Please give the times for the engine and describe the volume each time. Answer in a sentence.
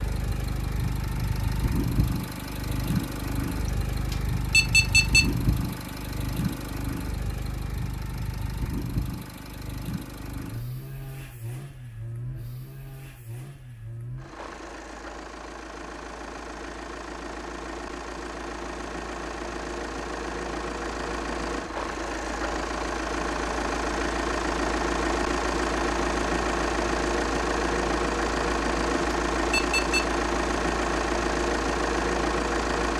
The engine can be heard from 0.0 to 32.9 s, getting quieter then louder.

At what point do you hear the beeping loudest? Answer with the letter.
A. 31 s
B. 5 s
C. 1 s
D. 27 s
B.